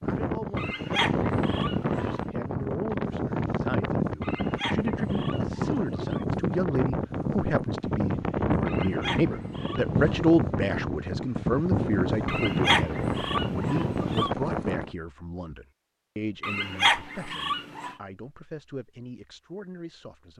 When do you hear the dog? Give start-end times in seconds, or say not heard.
0.6-2.2, 4.2-6.2, 8.7-9.9, 12.2-14.3, 16.4-17.9.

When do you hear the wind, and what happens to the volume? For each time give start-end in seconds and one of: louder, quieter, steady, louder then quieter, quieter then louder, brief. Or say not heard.
0.0-14.9 steady.